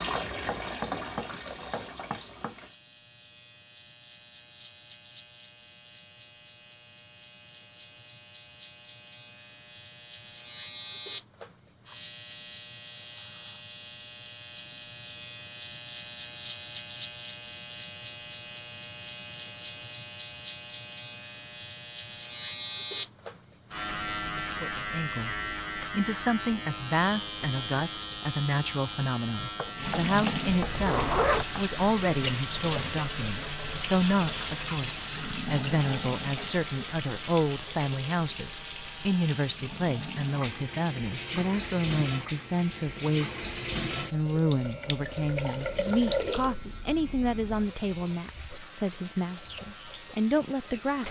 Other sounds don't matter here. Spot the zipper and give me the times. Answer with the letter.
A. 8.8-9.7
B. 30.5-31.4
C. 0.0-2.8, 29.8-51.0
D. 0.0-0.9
B.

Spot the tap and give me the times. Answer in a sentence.
The tap can be heard from 0.0 to 2.8 s and from 29.8 to 51.0 s.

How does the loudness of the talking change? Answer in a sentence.
The loudness of the talking stays about the same.